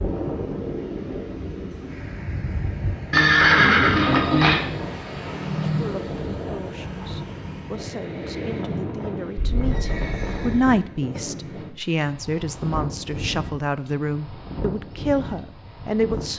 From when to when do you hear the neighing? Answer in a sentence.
The neighing can be heard from 3.1 to 4.5 s and from 9.3 to 10.8 s.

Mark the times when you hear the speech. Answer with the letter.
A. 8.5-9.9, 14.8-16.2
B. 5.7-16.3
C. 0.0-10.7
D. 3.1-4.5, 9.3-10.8
B.